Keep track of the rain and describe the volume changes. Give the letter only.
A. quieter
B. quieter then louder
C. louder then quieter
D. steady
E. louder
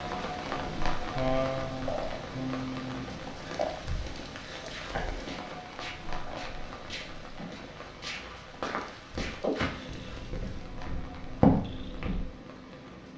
A.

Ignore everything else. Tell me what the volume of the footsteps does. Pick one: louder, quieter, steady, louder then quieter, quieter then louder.
louder.